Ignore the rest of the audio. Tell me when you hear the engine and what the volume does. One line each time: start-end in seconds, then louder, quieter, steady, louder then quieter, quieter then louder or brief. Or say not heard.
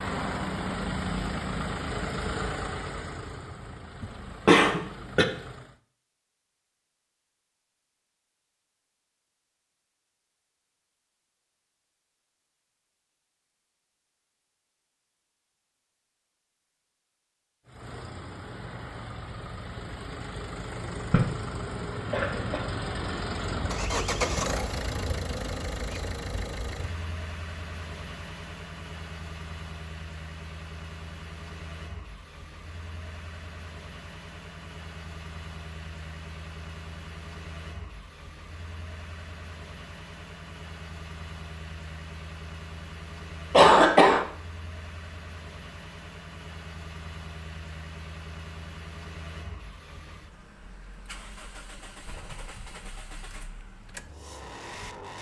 0.0-5.8 quieter
17.6-55.1 quieter.